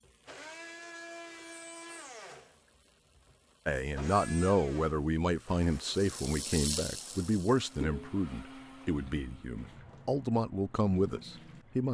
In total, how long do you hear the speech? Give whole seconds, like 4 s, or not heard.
8 s.